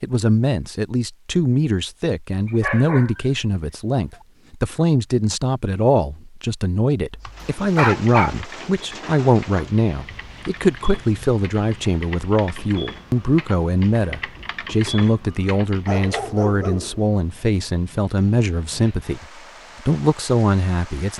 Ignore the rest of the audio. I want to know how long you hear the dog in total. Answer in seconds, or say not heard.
3 s.